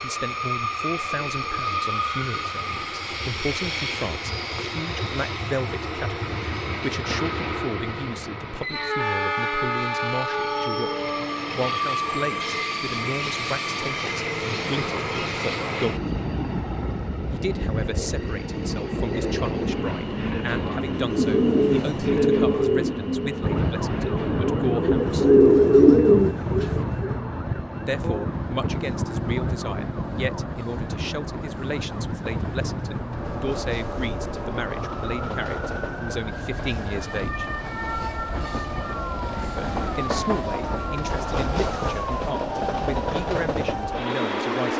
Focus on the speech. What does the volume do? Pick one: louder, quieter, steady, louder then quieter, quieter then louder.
steady.